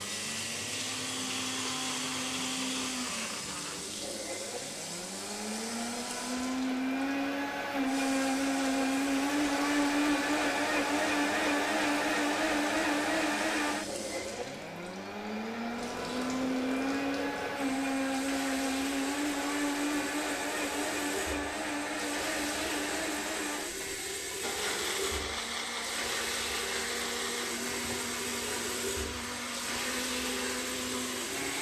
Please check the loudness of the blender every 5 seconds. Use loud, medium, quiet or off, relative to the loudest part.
medium, loud, loud, loud, medium, medium, medium.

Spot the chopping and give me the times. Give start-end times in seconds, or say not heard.
not heard.